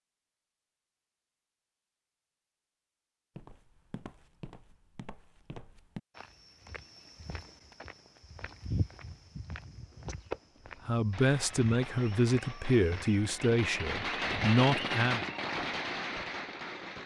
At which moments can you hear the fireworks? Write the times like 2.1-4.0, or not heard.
9.9-17.0.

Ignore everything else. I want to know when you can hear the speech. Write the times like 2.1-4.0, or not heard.
10.8-15.3.